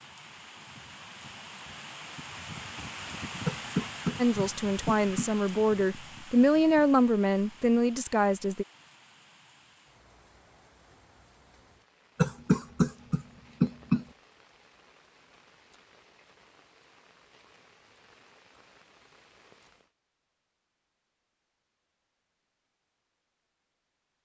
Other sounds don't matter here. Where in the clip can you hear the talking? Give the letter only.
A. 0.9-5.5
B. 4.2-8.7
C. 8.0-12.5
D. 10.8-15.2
B.